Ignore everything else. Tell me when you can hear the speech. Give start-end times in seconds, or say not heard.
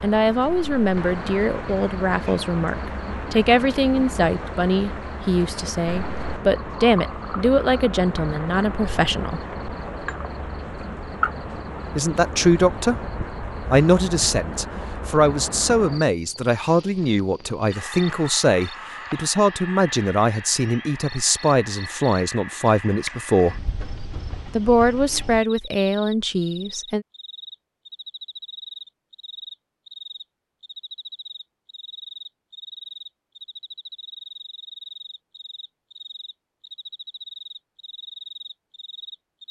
0.0-9.4, 11.9-12.9, 13.7-23.6, 24.6-27.1.